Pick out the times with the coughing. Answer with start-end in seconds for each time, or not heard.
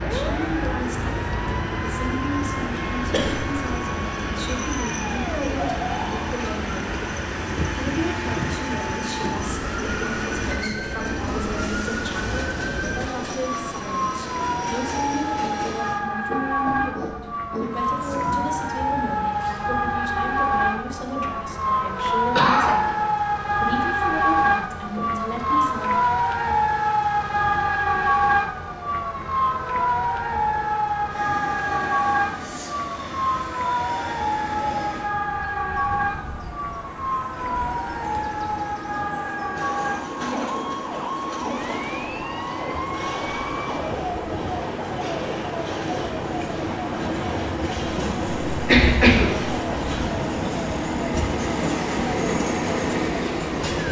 3.1-3.6, 22.4-22.9, 48.5-49.5.